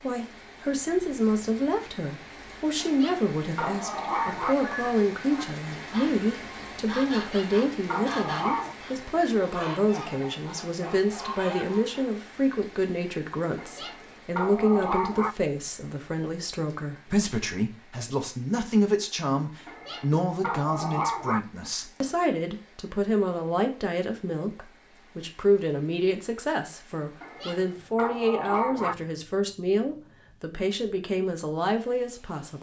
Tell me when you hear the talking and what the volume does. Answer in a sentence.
You can hear the talking from 0.0 to 32.5 s, at a steady volume.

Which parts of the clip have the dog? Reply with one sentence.
You can hear the dog from 2.8 to 4.5 s, from 7.2 to 8.8 s, from 13.6 to 15.3 s, from 19.6 to 21.4 s and from 27.2 to 28.9 s.